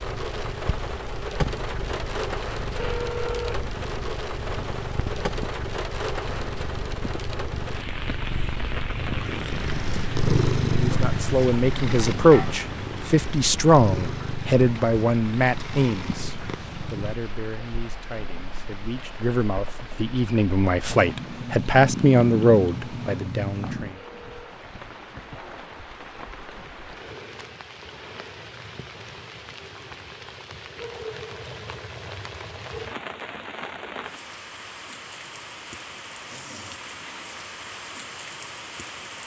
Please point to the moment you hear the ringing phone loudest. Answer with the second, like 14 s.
3 s.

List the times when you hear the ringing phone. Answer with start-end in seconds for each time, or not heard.
2.8-3.6, 23.9-24.6.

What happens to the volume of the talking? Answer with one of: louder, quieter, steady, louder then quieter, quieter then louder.
quieter then louder.